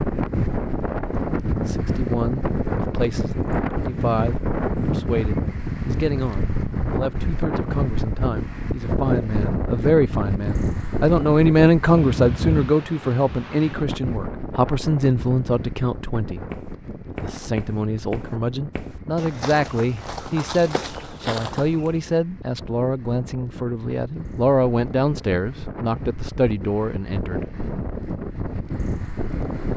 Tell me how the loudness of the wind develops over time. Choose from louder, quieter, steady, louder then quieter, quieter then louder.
quieter then louder.